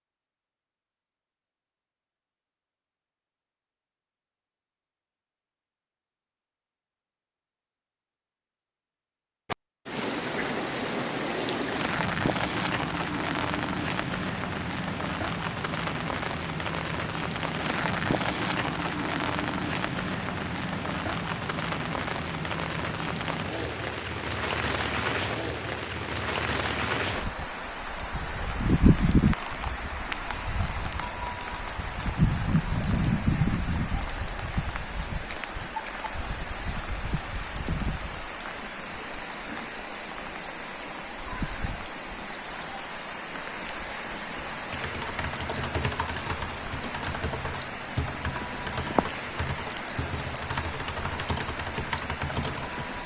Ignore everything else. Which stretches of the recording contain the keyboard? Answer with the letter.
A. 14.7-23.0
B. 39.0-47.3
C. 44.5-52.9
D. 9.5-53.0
C.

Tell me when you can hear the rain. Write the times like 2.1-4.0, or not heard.
9.5-53.0.